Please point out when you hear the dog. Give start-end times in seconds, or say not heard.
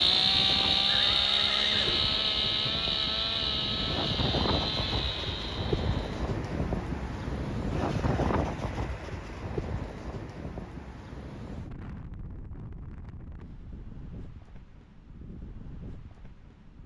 not heard.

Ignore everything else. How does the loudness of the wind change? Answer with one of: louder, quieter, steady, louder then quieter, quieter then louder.
louder then quieter.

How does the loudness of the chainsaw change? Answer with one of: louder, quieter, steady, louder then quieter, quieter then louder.
quieter.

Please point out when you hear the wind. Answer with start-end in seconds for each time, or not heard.
0.0-16.8.